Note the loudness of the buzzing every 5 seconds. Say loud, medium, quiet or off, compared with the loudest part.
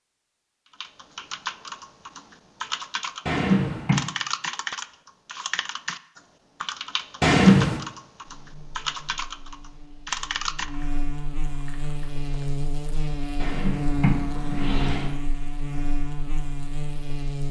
off, quiet, loud, loud.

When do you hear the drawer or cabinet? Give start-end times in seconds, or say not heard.
3.2-4.0, 7.2-7.8, 13.4-15.1.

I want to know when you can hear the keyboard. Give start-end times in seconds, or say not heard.
0.8-12.6.